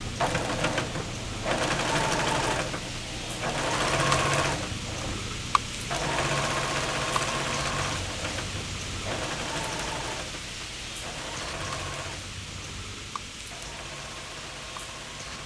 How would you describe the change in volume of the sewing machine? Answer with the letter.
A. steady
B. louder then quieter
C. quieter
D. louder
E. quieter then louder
C.